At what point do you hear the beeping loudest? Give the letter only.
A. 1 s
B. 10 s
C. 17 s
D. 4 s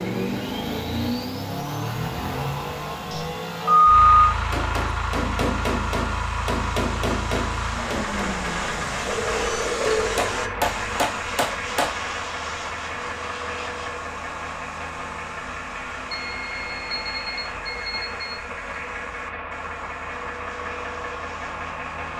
D.